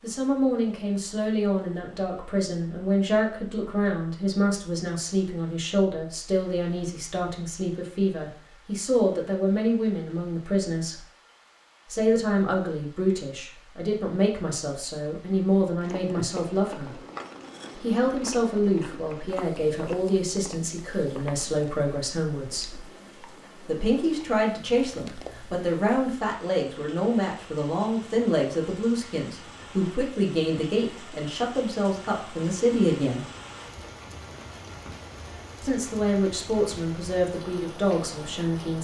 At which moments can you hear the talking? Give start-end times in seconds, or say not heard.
0.0-11.0, 11.9-17.0, 17.8-22.8, 23.6-33.2, 35.6-38.8.